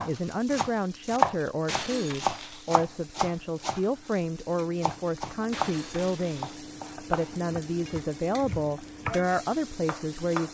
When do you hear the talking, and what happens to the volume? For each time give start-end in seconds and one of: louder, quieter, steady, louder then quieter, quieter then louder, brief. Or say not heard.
0.0-10.4 steady.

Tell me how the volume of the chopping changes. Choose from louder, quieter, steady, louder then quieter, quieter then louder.
quieter.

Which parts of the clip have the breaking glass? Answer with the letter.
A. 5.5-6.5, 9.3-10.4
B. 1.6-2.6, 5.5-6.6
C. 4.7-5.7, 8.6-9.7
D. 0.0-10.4
B.